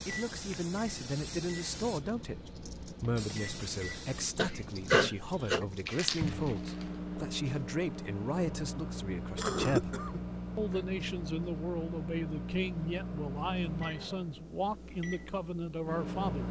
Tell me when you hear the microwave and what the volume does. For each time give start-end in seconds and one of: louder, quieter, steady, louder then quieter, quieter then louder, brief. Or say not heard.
0.0-16.4 louder.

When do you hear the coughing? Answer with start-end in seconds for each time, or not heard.
4.3-5.6, 9.3-11.1.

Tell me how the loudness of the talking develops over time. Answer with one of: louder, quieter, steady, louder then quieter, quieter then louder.
steady.